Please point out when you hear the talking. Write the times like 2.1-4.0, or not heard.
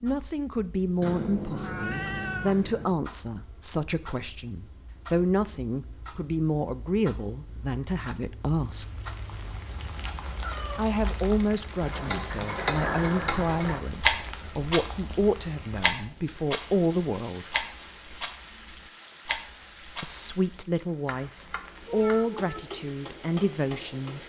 0.0-8.8, 10.8-17.5, 20.0-24.2.